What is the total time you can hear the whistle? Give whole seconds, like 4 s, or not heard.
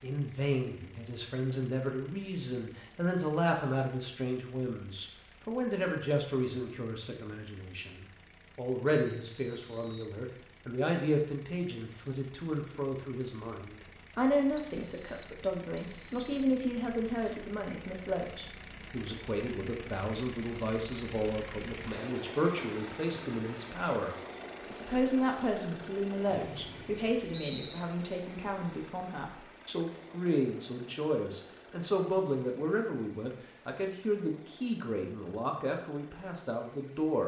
5 s.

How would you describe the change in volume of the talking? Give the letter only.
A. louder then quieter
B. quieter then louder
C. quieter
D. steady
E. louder
D.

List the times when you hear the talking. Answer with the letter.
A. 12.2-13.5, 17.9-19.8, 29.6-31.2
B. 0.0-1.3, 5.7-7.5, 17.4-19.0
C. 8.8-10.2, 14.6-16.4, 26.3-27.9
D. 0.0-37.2
D.